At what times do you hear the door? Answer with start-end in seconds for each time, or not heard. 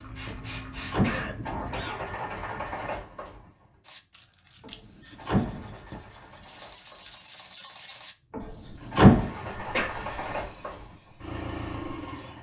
0.3-1.5, 4.6-5.8, 8.3-9.3.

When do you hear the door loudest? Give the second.
9 s.